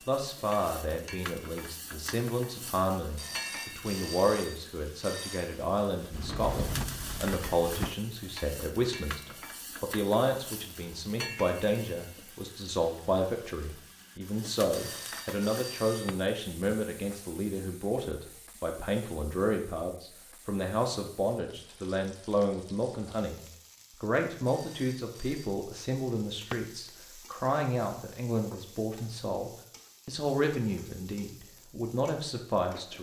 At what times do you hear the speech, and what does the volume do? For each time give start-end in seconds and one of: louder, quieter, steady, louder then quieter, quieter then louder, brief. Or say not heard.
0.1-32.9 steady.